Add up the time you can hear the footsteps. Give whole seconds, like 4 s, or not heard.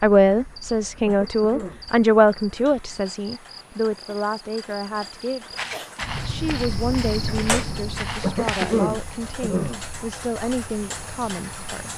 3 s.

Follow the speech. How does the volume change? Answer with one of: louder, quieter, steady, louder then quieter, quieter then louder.
quieter.